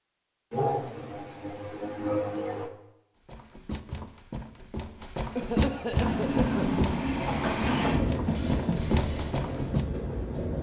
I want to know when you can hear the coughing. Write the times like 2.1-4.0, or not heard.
0.5-2.7, 5.3-6.7.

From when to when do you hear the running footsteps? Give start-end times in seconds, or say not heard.
3.2-9.8.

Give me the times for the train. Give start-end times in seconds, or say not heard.
6.0-10.5.